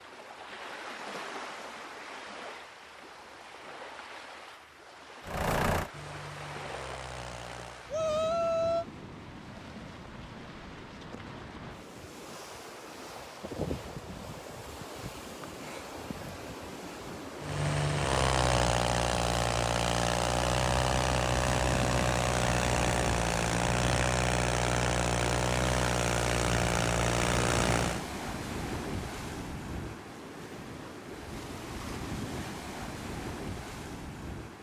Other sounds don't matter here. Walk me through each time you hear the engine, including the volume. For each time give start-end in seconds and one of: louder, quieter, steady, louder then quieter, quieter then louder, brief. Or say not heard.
5.2-7.9 brief
17.4-28.1 steady.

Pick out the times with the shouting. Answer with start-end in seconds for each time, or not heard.
7.9-8.8.